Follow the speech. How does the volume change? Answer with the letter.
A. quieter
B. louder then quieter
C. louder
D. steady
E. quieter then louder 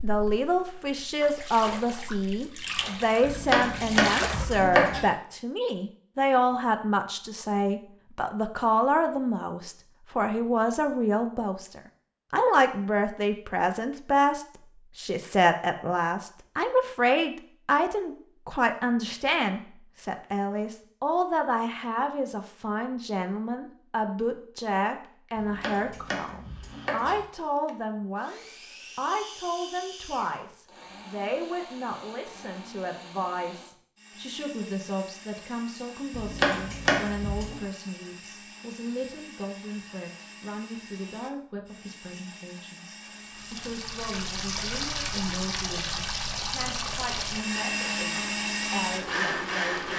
A.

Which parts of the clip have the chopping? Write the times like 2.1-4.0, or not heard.
3.2-5.0, 25.4-27.2, 36.1-37.6.